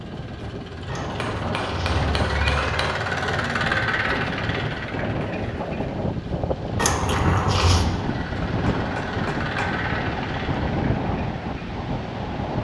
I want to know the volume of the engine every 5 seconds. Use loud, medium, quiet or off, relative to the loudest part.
loud, medium, medium.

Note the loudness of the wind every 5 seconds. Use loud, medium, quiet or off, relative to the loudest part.
medium, loud, loud.